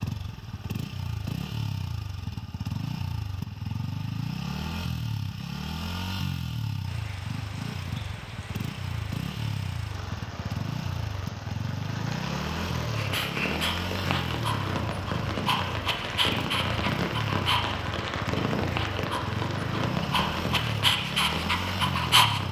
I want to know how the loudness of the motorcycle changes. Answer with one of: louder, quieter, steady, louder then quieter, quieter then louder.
steady.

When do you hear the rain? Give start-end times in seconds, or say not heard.
6.8-22.4.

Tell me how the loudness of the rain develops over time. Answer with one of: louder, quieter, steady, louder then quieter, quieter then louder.
louder.